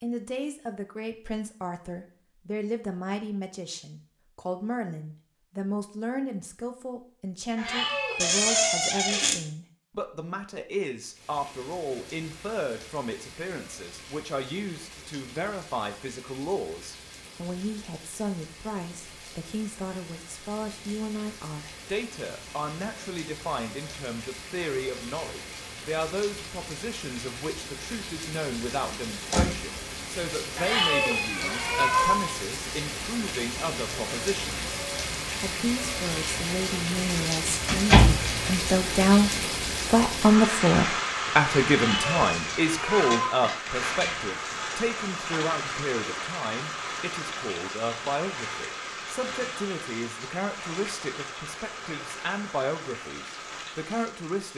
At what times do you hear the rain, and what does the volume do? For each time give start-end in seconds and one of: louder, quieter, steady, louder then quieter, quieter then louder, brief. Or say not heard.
11.1-54.5 louder then quieter.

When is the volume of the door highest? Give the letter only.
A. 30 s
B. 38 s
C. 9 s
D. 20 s
B.